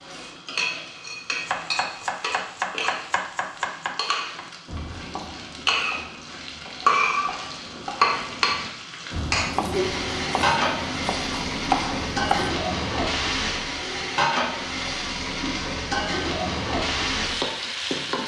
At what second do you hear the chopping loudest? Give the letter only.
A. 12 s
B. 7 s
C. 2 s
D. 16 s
A.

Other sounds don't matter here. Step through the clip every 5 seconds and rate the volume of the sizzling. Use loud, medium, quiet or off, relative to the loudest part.
medium, loud, loud, loud.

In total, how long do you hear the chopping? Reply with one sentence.
The chopping can be heard for 11 seconds in total.